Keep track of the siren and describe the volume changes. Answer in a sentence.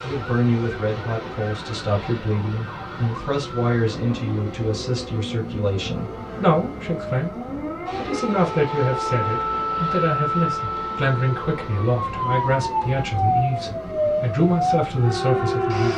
The volume of the siren goes up.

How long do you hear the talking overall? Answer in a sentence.
The talking can be heard for 16 seconds in total.